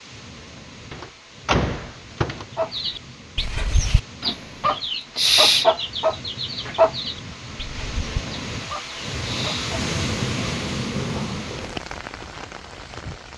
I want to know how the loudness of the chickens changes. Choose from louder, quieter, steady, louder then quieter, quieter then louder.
louder then quieter.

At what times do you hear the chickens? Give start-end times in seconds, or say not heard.
2.5-9.8.